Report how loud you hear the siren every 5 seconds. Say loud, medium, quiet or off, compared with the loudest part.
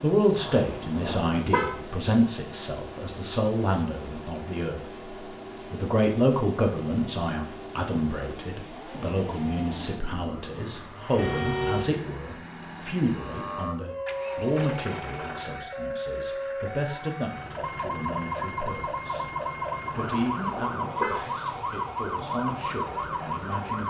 off, off, loud, loud, loud.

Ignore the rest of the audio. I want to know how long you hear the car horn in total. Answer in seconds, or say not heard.
4 s.